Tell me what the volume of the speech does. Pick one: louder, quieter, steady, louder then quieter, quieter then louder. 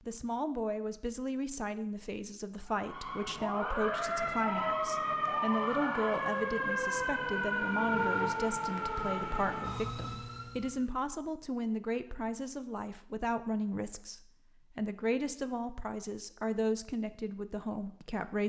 steady.